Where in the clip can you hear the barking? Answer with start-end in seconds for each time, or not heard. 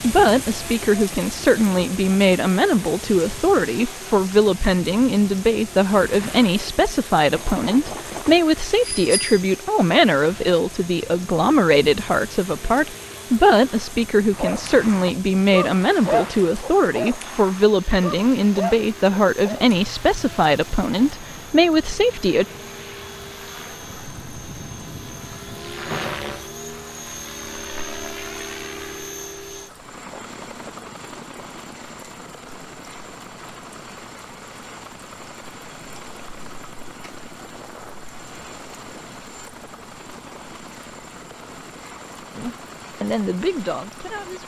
14.3-20.1.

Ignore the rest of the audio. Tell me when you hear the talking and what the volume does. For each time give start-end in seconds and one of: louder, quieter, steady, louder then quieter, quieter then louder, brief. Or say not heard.
0.0-22.4 steady
42.4-44.4 brief.